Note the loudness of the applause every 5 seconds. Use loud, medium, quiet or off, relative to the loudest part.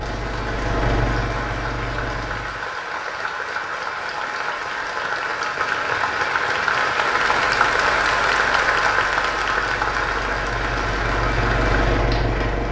medium, loud, medium.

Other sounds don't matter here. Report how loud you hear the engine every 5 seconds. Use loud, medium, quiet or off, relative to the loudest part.
loud, quiet, loud.